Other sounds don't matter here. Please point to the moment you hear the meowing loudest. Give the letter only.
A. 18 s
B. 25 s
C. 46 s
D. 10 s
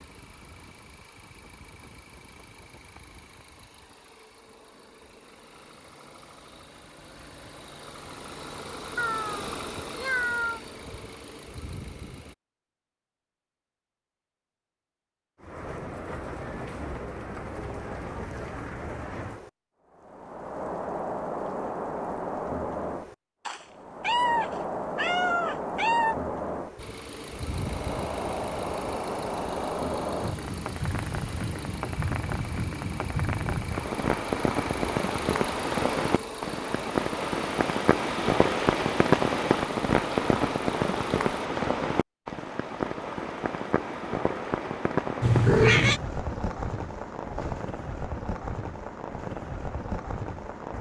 C.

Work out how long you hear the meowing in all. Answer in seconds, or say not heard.
5 s.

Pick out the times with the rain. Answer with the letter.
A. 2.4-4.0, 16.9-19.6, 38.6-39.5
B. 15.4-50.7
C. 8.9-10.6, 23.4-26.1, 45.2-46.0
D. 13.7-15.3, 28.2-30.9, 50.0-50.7
B.